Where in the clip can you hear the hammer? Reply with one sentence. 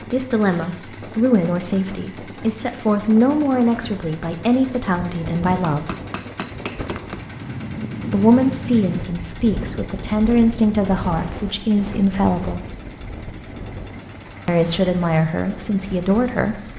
You can hear the hammer from 5.7 to 7.2 s.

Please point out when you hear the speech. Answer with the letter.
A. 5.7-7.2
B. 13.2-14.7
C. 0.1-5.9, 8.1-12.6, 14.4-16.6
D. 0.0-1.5
C.